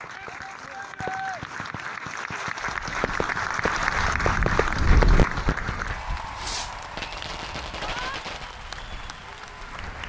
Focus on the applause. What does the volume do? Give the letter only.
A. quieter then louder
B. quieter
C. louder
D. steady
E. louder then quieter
E.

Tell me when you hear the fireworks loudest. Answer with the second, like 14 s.
5 s.